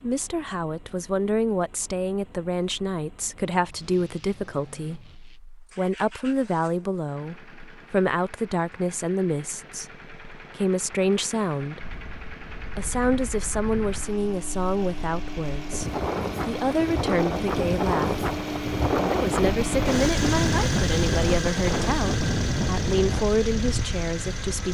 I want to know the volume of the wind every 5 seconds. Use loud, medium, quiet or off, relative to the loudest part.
off, off, quiet, loud, loud.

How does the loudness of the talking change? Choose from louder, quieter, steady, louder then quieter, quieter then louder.
steady.